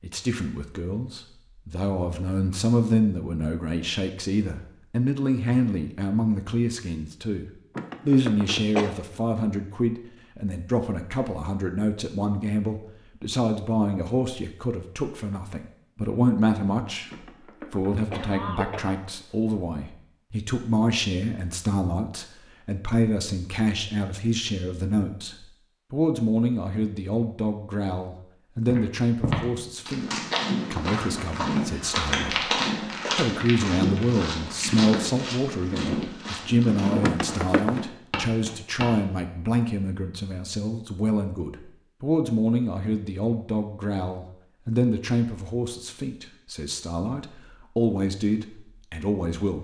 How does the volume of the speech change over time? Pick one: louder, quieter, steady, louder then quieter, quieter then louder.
steady.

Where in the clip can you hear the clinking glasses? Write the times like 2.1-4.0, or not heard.
not heard.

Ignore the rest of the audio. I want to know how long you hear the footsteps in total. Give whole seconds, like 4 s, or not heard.
10 s.